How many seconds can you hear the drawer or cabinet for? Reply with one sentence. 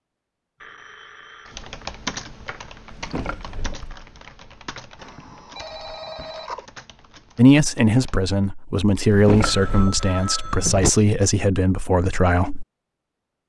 You can hear the drawer or cabinet for 3 seconds altogether.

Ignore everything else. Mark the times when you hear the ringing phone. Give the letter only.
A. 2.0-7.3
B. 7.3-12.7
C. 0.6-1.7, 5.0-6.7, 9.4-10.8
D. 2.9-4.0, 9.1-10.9
C.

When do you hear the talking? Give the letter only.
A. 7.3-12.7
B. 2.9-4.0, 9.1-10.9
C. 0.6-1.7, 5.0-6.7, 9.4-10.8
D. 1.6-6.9
A.